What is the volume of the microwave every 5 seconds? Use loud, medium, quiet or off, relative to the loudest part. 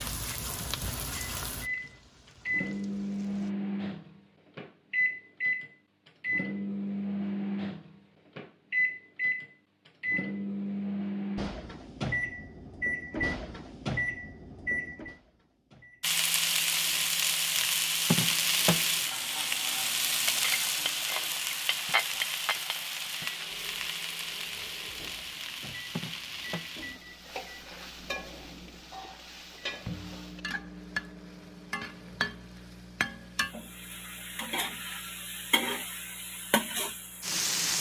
loud, loud, loud, quiet, quiet, quiet, quiet, quiet.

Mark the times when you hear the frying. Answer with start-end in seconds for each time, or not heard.
0.0-3.5, 16.0-37.7.